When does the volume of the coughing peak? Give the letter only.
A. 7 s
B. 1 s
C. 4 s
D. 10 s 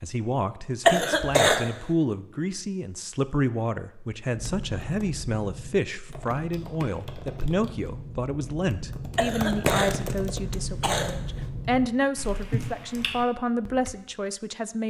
B.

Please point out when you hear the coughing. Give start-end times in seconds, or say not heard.
0.8-1.6, 9.2-11.4.